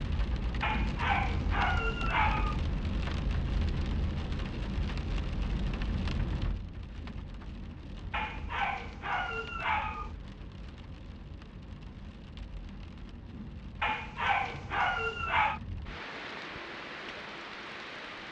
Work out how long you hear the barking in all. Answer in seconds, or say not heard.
6 s.